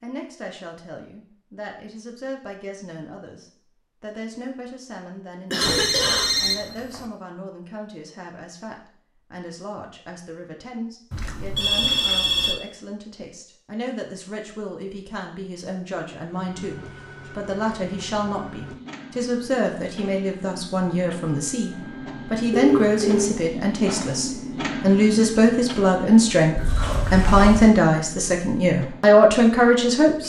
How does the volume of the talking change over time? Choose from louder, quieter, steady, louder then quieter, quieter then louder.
louder.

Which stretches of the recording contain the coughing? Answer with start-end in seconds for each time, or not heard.
5.5-6.3, 26.6-27.8.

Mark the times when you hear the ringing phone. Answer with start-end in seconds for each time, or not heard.
5.6-7.0, 11.1-12.6, 22.5-23.4.